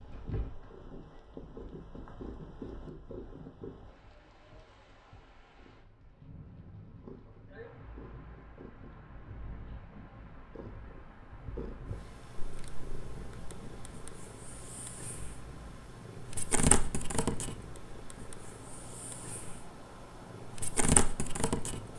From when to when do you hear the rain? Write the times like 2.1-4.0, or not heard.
0.0-21.9.